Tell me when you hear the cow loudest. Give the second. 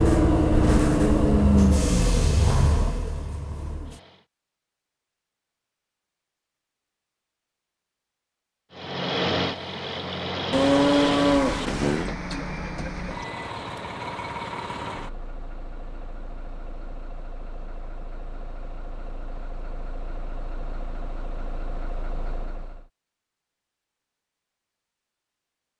11 s.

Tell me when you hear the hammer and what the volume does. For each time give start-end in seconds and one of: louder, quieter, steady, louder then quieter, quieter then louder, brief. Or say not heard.
not heard.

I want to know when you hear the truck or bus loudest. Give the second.
1 s.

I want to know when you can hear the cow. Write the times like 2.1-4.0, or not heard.
10.5-12.1.